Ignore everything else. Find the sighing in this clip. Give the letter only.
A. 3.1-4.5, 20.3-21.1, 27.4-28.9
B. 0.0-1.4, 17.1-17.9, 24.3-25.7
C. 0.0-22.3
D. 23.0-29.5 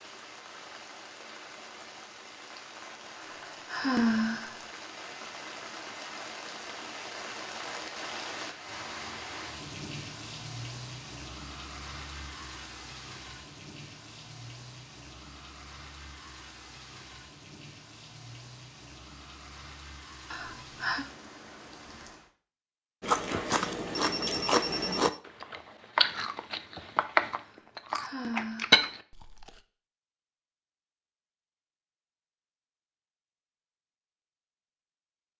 A.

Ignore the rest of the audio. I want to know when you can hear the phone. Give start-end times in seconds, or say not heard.
23.9-25.2.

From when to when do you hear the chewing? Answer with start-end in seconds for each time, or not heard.
23.0-29.5.